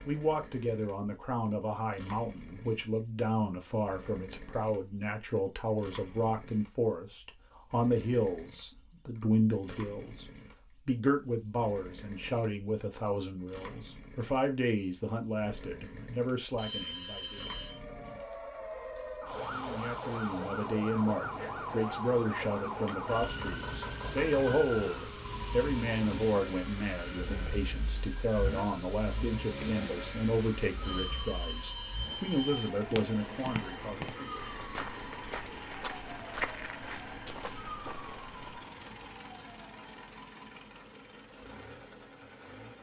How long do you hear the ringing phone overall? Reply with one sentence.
You can hear the ringing phone for 3 seconds altogether.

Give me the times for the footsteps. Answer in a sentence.
You can hear the footsteps from 32.8 to 38.6 s.